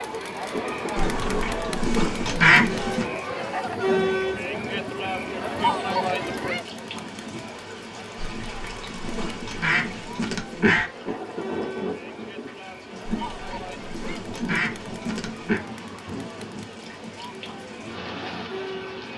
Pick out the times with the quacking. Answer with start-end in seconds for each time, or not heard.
0.9-3.0, 8.2-10.8, 13.0-15.6.